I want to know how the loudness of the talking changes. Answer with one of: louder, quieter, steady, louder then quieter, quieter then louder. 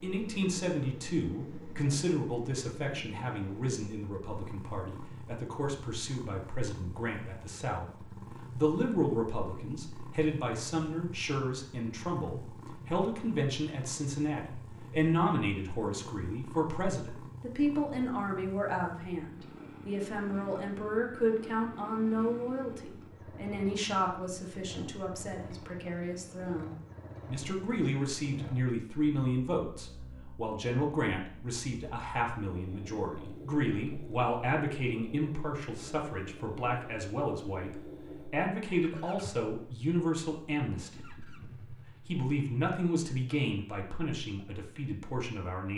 steady.